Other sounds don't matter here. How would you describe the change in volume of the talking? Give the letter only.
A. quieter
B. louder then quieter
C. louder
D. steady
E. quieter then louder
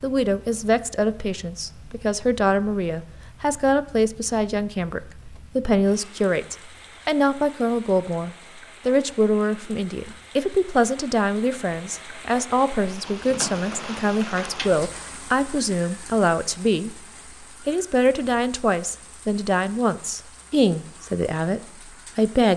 D.